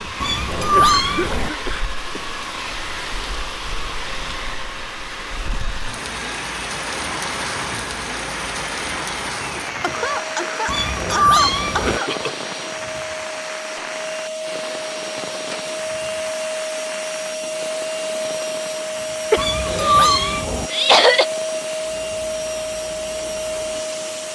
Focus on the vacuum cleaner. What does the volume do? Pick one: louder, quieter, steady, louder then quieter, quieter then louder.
louder.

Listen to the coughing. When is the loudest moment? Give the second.
21 s.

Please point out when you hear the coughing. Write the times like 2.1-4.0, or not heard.
0.6-2.3, 9.8-12.5, 19.3-21.2.